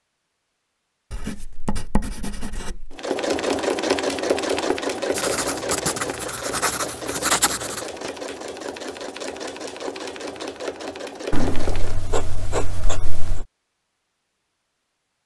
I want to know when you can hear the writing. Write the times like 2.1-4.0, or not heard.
1.1-3.0, 5.2-7.8, 11.3-13.4.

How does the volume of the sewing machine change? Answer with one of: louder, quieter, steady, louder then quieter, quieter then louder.
quieter.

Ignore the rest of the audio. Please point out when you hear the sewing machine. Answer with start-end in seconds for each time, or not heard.
2.9-11.9.